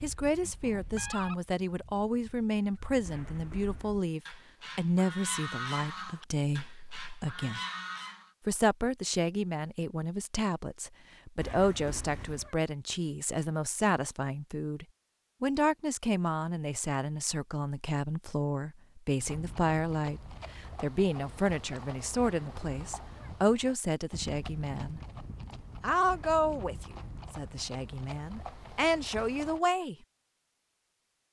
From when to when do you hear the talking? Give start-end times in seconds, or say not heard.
0.0-7.6, 8.4-25.0, 25.8-29.9.